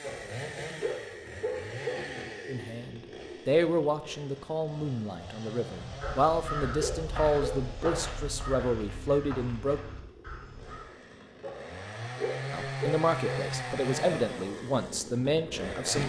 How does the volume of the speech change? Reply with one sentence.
The volume of the speech stays about the same.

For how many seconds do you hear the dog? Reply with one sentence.
The dog can be heard for 6 seconds in total.